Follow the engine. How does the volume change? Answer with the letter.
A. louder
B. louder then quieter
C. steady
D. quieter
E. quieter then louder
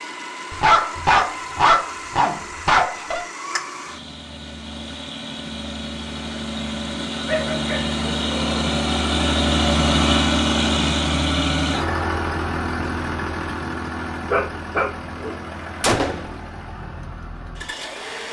B.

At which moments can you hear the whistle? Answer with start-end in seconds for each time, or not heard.
not heard.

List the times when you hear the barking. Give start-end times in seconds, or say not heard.
0.5-3.2, 7.2-8.6, 14.3-15.8.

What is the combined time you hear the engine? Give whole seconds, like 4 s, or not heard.
18 s.